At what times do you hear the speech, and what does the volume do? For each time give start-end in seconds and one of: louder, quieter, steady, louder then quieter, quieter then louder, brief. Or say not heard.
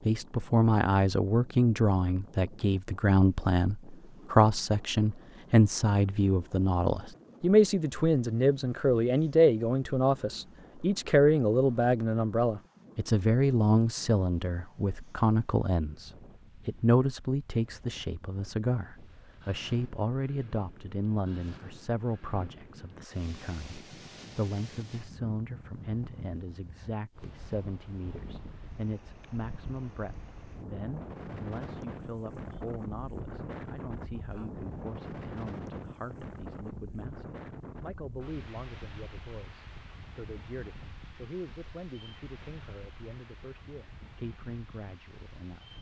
0.1-45.7 quieter.